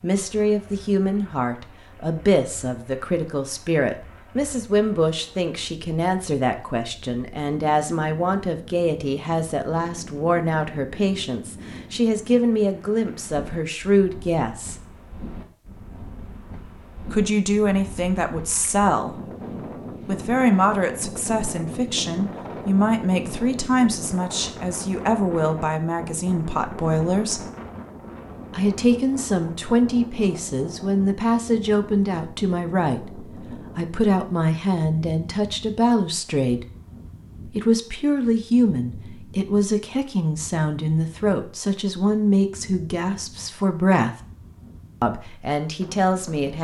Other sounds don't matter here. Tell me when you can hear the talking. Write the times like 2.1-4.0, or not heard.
0.0-14.8, 17.1-19.2, 20.1-27.5, 28.5-36.6, 37.5-44.1, 45.0-46.5.